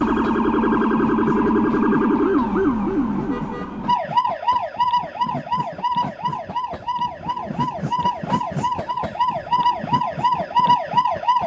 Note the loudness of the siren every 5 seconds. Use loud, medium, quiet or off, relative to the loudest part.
loud, medium, loud.